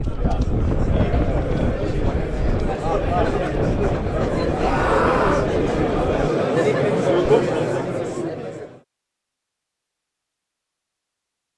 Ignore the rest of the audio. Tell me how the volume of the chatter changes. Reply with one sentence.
The loudness of the chatter goes up.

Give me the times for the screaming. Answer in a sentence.
You can hear the screaming from 4.6 to 5.5 s.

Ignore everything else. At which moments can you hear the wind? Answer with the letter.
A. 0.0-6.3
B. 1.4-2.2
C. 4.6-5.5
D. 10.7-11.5
A.